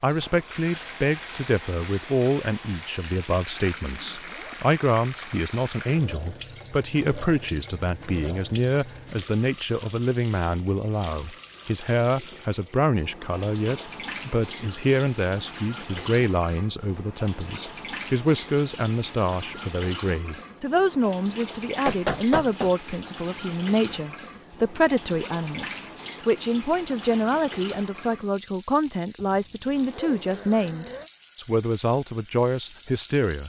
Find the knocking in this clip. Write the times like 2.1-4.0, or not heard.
21.9-22.7.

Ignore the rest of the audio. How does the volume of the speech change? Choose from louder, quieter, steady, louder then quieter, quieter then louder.
steady.